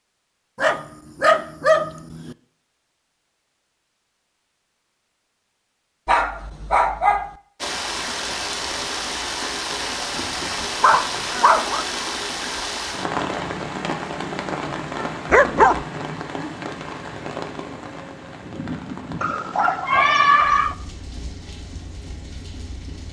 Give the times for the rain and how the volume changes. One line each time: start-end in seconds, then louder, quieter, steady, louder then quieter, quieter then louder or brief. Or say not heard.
7.6-23.0 quieter.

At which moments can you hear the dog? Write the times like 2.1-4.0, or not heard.
0.6-2.4, 6.0-7.3, 10.2-11.8, 15.3-15.8, 19.2-20.8.